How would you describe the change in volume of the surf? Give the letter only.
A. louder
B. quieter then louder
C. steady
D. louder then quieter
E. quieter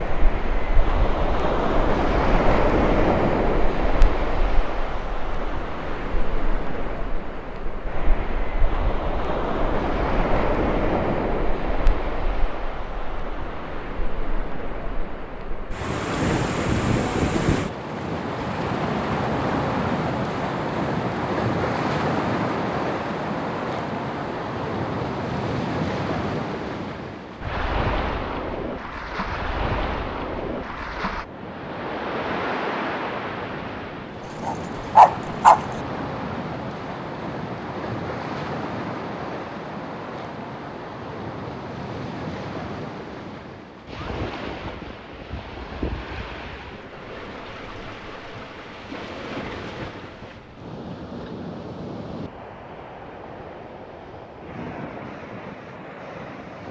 E.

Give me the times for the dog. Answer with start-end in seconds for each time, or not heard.
34.4-35.6.